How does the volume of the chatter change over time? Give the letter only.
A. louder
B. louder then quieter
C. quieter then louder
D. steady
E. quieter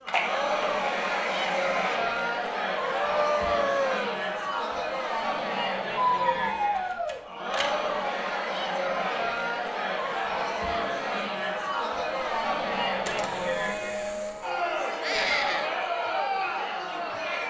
D.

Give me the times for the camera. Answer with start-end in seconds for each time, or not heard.
0.1-1.9, 6.8-7.8, 13.1-14.5.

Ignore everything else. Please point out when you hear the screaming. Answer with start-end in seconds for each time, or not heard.
2.8-4.2, 6.0-7.2, 15.0-15.7.